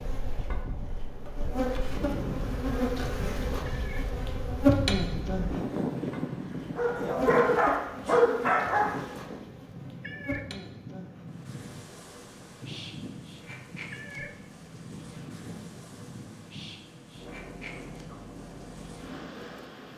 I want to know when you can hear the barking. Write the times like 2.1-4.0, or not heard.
6.8-9.2.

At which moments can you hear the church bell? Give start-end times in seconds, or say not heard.
not heard.